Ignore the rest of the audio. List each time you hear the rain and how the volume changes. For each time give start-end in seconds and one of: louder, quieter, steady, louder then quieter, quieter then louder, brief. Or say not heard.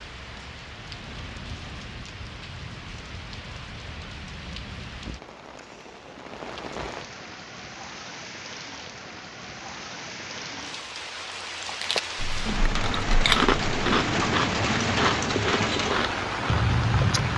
0.0-17.3 louder.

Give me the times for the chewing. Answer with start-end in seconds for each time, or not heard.
11.6-17.3.